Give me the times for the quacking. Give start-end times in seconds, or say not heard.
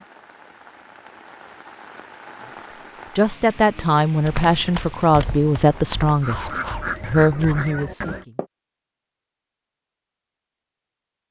6.2-8.2.